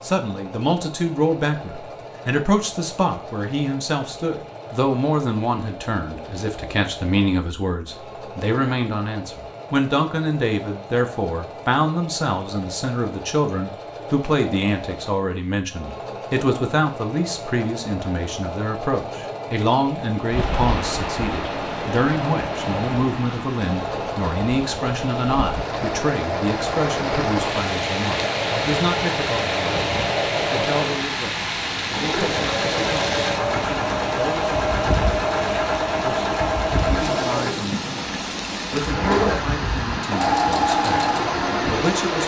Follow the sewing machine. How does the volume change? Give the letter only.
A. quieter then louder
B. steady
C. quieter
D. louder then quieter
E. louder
E.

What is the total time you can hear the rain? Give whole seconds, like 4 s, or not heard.
22 s.